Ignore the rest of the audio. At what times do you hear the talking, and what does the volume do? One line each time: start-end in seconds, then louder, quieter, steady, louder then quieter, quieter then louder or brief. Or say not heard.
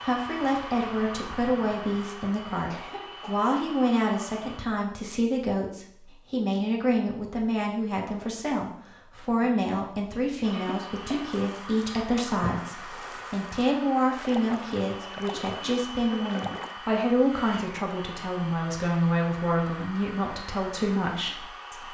0.0-21.8 steady.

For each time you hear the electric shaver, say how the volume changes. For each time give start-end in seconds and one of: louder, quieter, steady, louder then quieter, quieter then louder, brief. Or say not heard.
not heard.